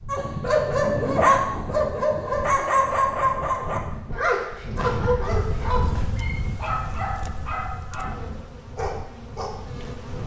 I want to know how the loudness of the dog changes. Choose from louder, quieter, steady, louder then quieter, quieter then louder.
quieter.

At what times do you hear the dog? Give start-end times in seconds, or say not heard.
0.1-9.6.